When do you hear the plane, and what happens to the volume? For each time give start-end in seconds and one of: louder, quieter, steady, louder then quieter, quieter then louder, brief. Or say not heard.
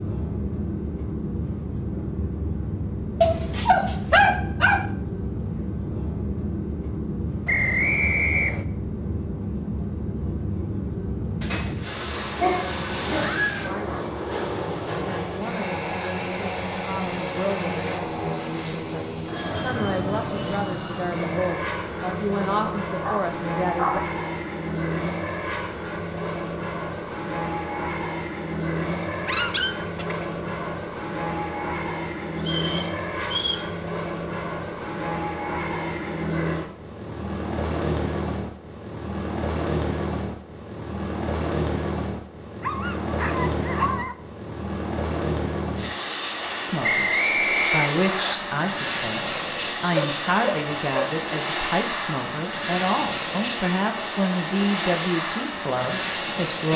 0.0-56.7 steady.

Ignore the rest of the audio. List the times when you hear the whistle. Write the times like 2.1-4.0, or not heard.
7.5-8.7, 32.5-33.6, 46.8-48.4.